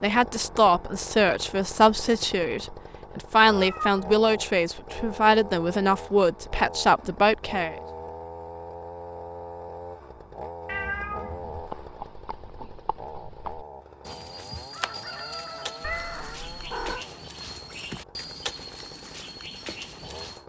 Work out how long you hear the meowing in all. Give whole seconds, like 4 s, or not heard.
3 s.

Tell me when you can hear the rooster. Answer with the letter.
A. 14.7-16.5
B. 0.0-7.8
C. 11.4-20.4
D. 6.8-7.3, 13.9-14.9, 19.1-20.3
A.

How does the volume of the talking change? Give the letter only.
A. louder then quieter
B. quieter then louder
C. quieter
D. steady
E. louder
D.